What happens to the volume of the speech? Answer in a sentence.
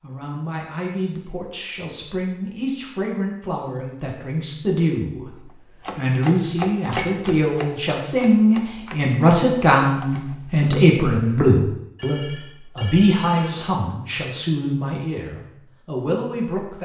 The volume of the speech goes up, then down.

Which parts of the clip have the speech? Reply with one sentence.
You can hear the speech from 0.0 to 16.7 s.